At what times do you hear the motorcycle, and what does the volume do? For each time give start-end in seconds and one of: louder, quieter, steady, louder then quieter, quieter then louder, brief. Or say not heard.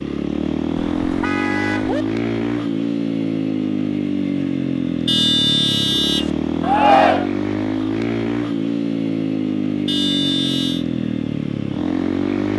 0.0-12.5 steady.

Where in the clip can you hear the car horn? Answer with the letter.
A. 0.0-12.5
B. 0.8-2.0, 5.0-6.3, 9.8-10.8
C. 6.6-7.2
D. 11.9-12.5
B.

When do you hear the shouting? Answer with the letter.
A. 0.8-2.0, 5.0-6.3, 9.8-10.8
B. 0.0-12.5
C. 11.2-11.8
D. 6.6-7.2
D.